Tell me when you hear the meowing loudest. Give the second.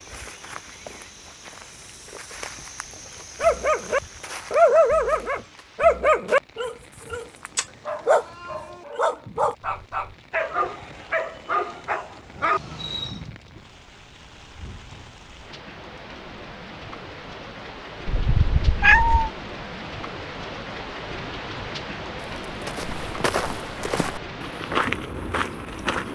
19 s.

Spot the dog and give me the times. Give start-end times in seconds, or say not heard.
3.4-13.2.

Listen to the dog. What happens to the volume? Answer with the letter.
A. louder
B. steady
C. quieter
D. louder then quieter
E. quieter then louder
C.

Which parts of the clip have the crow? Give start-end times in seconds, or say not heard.
not heard.